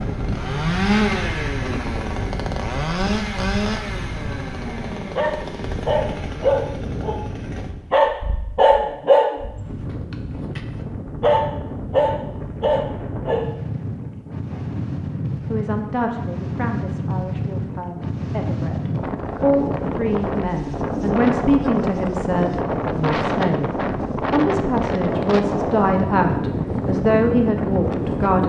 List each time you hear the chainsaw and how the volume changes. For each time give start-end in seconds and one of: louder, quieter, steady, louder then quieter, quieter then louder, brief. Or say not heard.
0.0-7.8 quieter.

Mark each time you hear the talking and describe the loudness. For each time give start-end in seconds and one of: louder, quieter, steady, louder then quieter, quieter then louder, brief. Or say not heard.
15.4-28.4 louder.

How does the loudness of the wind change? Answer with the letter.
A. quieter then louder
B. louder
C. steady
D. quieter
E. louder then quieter
B.